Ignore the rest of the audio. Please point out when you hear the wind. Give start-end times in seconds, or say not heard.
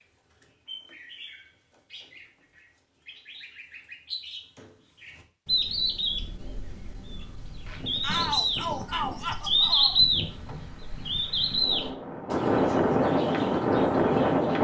6.0-14.5.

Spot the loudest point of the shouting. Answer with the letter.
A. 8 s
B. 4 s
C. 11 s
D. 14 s
A.